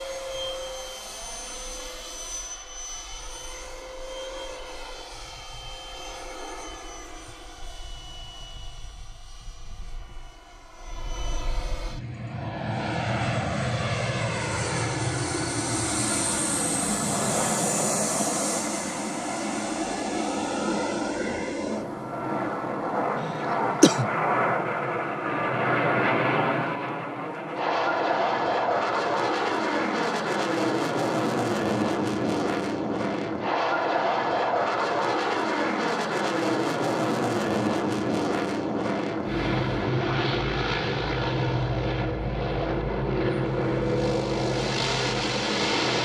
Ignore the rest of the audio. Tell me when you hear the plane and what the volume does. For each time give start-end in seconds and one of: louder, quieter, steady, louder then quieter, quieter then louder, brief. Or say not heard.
0.0-46.0 louder.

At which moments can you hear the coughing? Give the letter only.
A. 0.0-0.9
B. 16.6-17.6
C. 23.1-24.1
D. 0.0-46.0
C.